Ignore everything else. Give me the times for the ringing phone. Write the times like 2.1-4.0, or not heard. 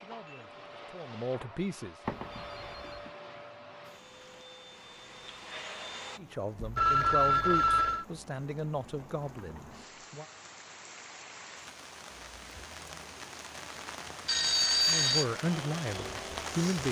2.0-3.0, 6.6-8.1, 14.2-15.2.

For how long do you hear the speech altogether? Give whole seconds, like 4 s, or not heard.
8 s.